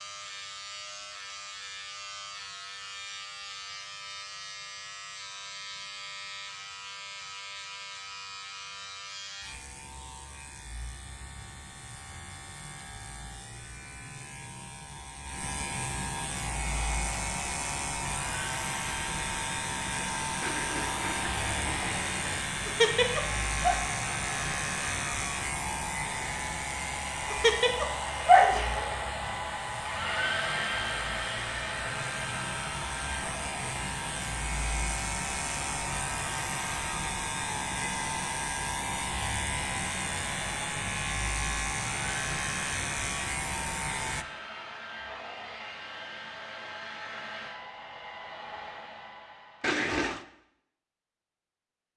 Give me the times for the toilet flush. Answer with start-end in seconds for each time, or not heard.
20.4-22.4, 49.6-50.2.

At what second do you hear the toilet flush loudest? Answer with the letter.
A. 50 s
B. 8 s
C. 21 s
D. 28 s
A.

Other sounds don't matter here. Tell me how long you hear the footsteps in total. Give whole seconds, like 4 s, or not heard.
not heard.